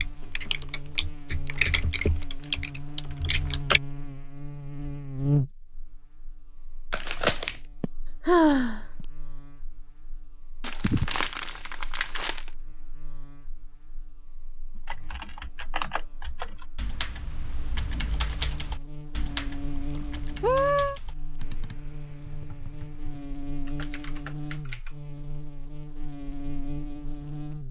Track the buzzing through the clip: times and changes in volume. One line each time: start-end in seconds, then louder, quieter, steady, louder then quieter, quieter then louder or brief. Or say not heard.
0.0-27.6 quieter then louder.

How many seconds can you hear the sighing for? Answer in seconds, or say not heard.
2 s.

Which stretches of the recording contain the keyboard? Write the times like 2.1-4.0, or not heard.
0.0-3.8, 14.8-25.0.